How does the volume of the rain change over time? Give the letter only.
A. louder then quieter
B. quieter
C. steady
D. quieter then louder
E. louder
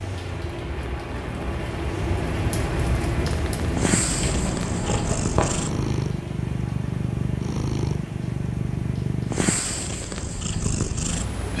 B.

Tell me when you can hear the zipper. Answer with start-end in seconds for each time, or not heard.
4.2-5.7.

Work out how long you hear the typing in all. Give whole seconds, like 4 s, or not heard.
not heard.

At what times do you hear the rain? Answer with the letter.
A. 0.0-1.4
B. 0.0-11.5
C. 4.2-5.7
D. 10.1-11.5
B.